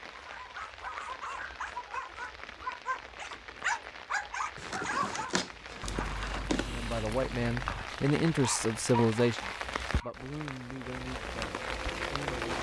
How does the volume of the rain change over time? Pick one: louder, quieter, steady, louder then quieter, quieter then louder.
louder.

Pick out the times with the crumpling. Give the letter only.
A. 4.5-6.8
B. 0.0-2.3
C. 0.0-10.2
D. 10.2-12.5
A.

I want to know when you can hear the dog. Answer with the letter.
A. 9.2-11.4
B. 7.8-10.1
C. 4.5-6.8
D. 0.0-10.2
D.